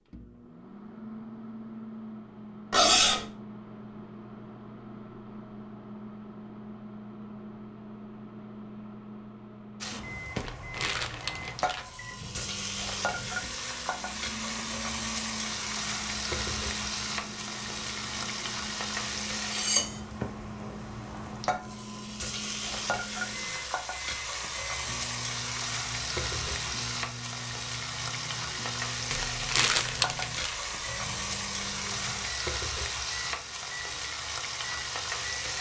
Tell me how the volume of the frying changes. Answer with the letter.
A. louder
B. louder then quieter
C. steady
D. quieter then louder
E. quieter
C.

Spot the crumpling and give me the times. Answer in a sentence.
The crumpling can be heard from 10.3 to 11.8 s and from 29.1 to 30.6 s.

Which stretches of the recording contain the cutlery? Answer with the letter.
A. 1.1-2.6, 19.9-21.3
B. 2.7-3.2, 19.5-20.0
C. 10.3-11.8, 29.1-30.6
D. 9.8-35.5
B.